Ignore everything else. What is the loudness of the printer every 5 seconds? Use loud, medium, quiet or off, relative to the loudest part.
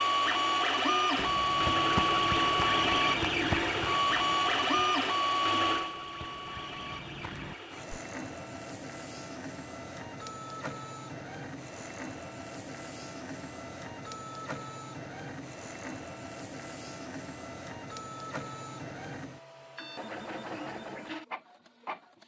loud, medium, quiet, quiet, quiet.